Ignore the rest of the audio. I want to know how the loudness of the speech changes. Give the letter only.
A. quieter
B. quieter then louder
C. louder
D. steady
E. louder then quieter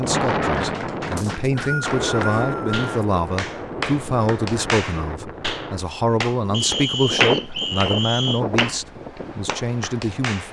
D.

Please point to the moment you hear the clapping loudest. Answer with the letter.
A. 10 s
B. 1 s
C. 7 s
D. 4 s
C.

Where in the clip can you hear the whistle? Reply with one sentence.
The whistle can be heard from 1.1 to 2.9 s and from 6.5 to 8.4 s.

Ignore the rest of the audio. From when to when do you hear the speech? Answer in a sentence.
You can hear the speech from 0.0 to 10.4 s.